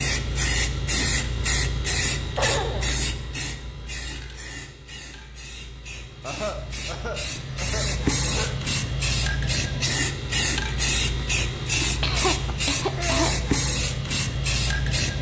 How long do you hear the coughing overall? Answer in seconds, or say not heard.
4 s.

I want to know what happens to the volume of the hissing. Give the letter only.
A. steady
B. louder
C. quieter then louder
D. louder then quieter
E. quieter
C.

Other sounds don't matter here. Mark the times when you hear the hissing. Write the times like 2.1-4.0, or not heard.
0.0-15.1.